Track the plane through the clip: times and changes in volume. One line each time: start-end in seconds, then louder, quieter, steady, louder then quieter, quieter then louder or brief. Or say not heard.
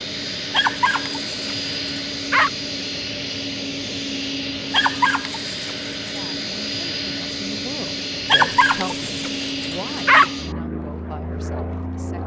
0.0-12.2 steady.